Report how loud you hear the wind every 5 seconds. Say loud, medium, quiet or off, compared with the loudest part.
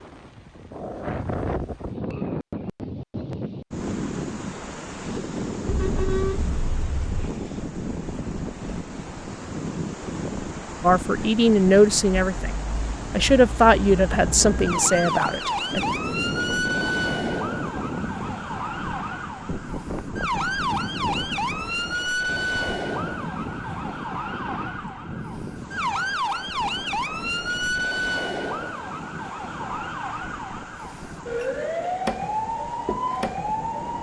loud, loud, loud, loud, loud, medium, medium.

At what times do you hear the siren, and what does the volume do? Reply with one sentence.
You can hear the siren from 12.1 to 33.9 s, at a steady volume.